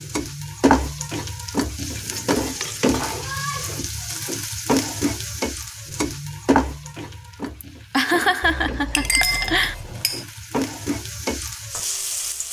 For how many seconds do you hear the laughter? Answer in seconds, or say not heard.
2 s.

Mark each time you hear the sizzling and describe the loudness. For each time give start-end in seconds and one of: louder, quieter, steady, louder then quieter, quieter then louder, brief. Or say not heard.
0.0-12.4 quieter then louder.